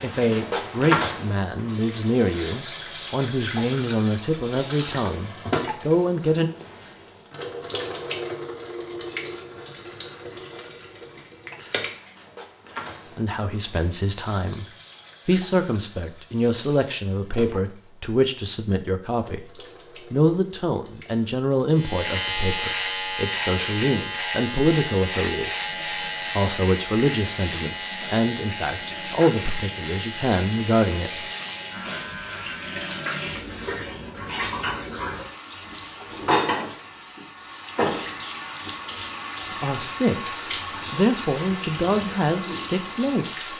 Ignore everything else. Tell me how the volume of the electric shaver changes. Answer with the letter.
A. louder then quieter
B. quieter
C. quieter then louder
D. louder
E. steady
B.